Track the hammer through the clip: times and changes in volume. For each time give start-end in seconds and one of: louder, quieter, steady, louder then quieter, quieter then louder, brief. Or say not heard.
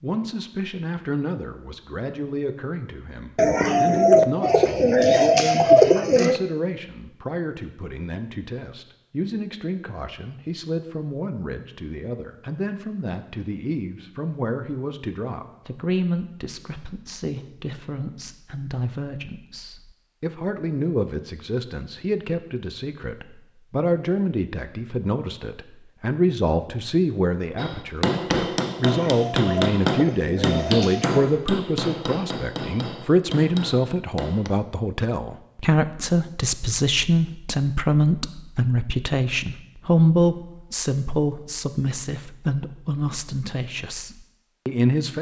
27.6-34.5 quieter.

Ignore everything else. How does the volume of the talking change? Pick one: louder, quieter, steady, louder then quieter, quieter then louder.
louder.